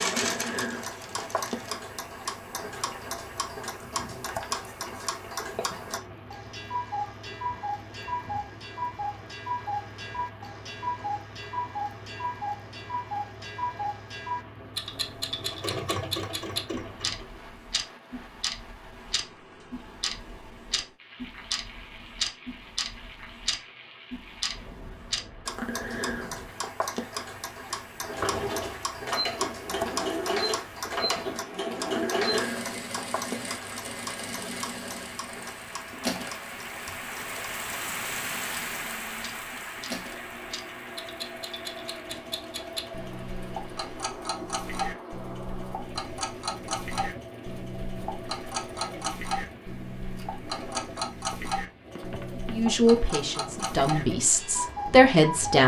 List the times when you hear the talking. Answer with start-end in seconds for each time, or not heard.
52.5-55.6.